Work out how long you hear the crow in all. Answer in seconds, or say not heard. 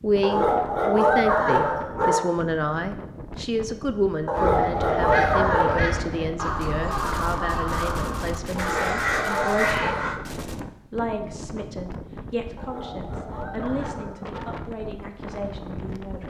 6 s.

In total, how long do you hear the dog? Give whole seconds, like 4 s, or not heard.
7 s.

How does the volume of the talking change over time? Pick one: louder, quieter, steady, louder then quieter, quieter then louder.
quieter.